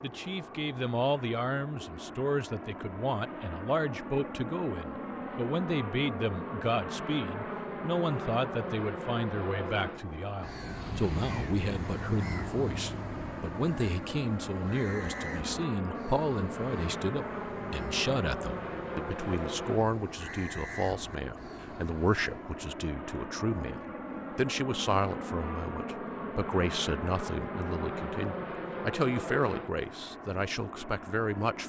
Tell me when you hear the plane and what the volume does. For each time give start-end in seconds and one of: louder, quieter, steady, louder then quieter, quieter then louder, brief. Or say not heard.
0.0-31.6 steady.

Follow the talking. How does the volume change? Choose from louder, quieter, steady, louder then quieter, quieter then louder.
steady.